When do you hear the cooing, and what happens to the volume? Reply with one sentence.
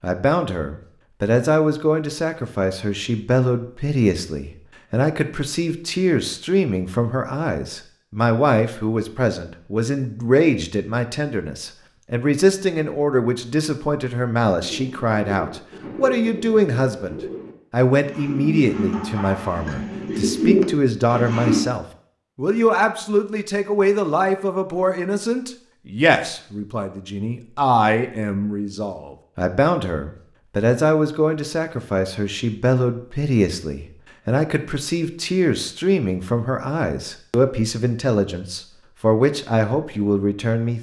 You can hear the cooing from 14.6 to 21.6 s, getting louder.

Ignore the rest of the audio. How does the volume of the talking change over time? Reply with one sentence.
The volume of the talking stays about the same.